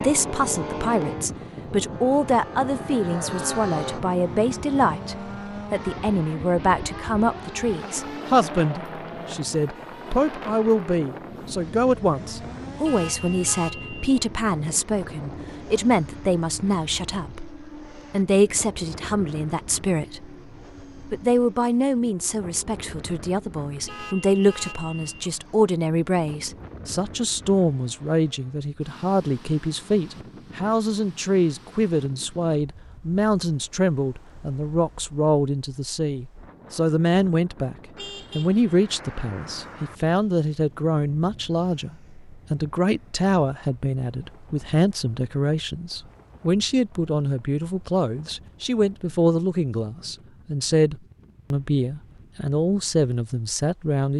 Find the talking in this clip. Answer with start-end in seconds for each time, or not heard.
0.0-20.4, 21.0-37.8, 38.4-54.1.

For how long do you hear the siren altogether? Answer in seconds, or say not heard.
not heard.